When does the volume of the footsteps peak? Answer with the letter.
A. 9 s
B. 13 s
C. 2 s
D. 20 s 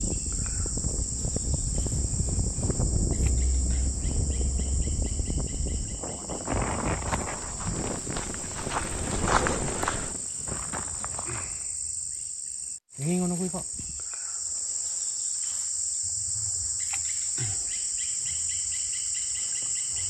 A.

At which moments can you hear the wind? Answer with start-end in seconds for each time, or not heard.
0.0-10.8.